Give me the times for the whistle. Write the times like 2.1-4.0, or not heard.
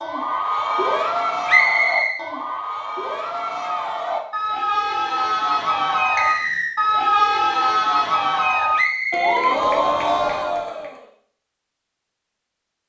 1.4-2.2, 6.2-6.8, 8.8-10.3.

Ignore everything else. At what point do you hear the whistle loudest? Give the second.
2 s.